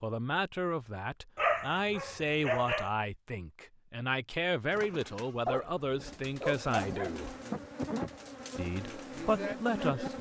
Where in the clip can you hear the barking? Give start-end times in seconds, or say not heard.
1.4-2.9, 5.5-7.2.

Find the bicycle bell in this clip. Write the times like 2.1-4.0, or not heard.
not heard.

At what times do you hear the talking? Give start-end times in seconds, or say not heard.
0.0-7.3, 8.6-10.1.